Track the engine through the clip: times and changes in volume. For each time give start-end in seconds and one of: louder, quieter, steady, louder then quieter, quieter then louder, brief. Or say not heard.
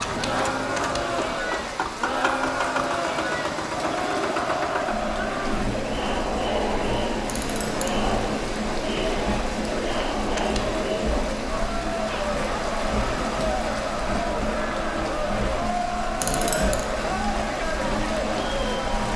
0.0-19.1 steady.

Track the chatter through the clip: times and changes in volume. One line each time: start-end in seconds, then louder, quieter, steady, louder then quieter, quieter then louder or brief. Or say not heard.
0.1-19.1 steady.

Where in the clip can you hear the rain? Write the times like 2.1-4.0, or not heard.
0.0-19.1.